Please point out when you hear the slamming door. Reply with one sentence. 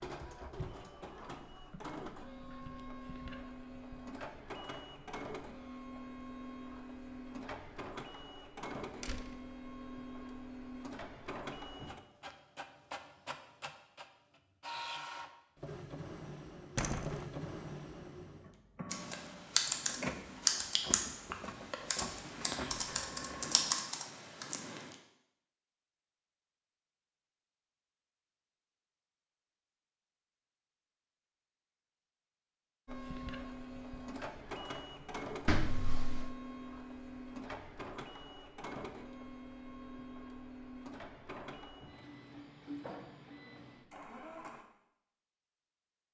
You can hear the slamming door from 9.0 to 9.4 s, from 16.8 to 17.2 s and from 35.5 to 36.4 s.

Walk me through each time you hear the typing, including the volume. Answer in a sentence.
You can hear the typing from 18.9 to 24.9 s, getting quieter then louder.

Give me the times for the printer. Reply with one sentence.
The printer can be heard from 0.0 to 23.7 s and from 32.9 to 44.6 s.